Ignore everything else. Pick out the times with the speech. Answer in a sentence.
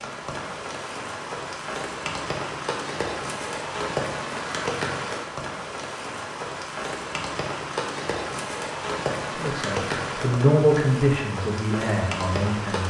The speech can be heard from 9.3 to 12.8 s.